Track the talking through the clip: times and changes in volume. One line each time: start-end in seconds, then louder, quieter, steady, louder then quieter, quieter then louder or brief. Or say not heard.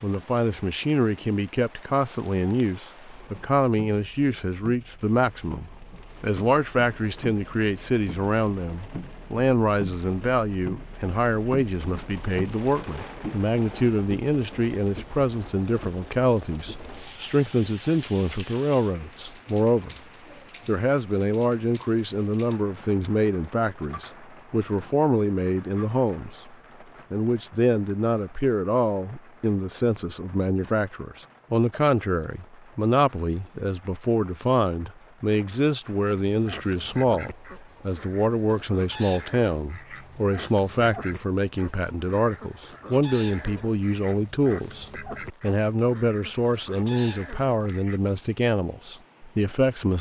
0.0-19.9 steady
20.6-49.9 steady.